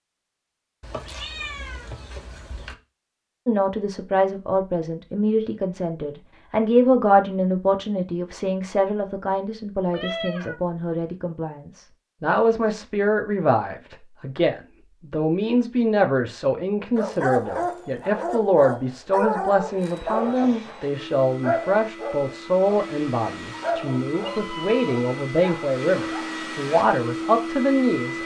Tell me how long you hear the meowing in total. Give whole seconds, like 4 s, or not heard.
4 s.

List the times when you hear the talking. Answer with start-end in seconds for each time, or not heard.
3.5-28.2.